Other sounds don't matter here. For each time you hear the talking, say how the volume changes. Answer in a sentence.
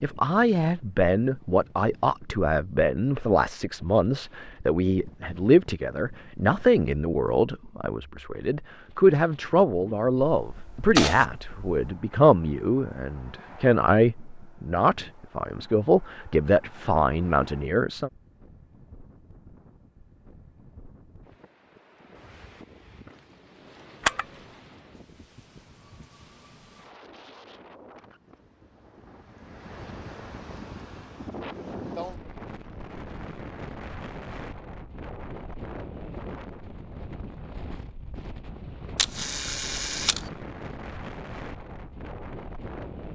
The talking can be heard from 0.0 to 18.1 s, at a steady volume.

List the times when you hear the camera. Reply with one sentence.
The camera can be heard from 10.3 to 11.9 s, from 24.1 to 24.6 s and from 39.0 to 40.3 s.